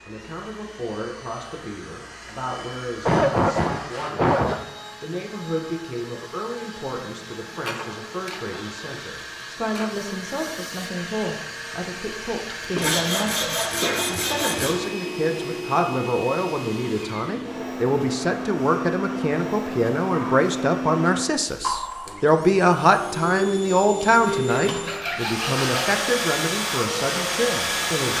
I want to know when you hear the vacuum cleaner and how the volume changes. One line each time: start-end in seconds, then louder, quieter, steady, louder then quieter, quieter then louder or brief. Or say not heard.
0.0-28.1 louder.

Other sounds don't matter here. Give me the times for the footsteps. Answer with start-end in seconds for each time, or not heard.
not heard.